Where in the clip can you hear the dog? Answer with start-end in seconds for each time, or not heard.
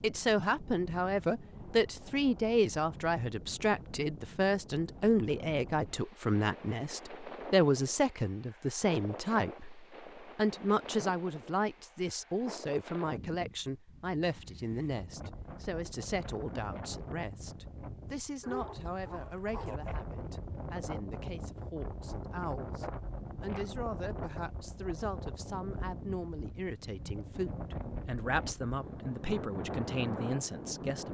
18.4-19.8.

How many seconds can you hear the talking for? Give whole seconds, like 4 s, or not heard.
31 s.